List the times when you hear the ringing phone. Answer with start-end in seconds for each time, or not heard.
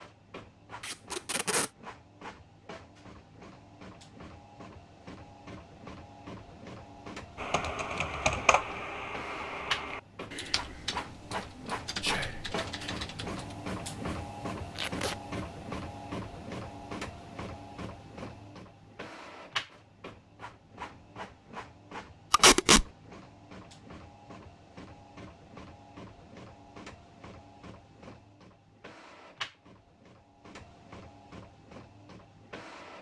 not heard.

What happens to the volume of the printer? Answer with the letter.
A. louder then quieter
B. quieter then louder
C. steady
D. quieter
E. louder
A.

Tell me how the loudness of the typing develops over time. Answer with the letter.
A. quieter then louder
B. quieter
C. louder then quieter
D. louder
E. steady
B.